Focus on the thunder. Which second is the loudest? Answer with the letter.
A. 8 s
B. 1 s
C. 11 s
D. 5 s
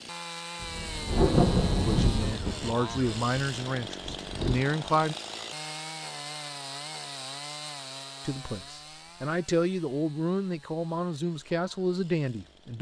B.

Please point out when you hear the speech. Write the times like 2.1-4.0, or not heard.
1.9-5.2, 8.2-12.7.